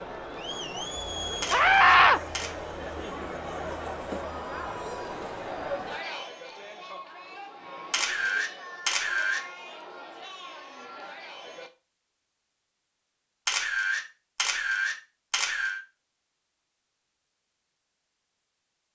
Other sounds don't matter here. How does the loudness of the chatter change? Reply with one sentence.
The volume of the chatter goes down.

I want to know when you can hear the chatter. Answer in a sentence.
The chatter can be heard from 0.0 to 11.7 s.